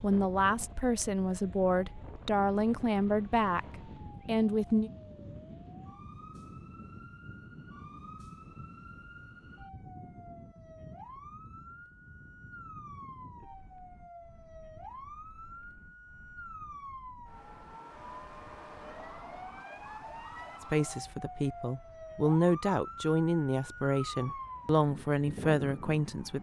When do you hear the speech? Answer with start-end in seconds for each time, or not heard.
0.0-4.9, 20.7-26.3.